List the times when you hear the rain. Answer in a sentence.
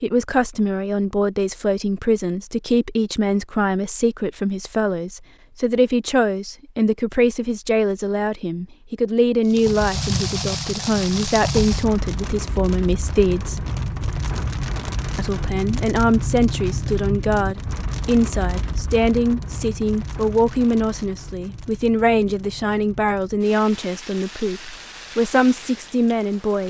You can hear the rain from 9.4 to 26.6 s.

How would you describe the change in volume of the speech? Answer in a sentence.
The volume of the speech stays about the same.